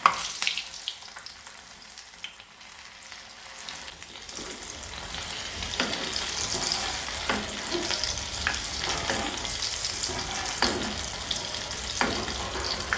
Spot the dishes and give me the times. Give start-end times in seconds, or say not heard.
6.3-12.9.